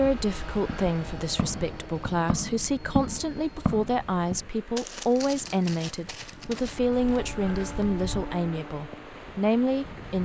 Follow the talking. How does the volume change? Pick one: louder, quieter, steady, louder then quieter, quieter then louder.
steady.